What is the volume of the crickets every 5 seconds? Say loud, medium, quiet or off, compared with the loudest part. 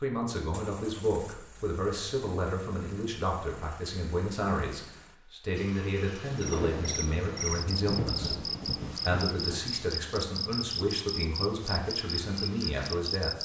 off, loud, loud.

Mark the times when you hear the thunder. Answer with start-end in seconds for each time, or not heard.
6.2-9.7.